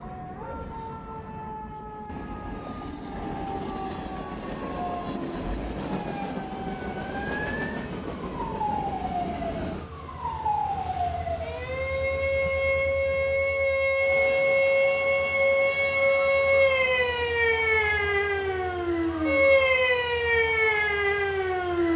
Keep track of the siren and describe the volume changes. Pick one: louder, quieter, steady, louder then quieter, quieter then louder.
louder.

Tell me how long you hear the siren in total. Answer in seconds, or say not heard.
22 s.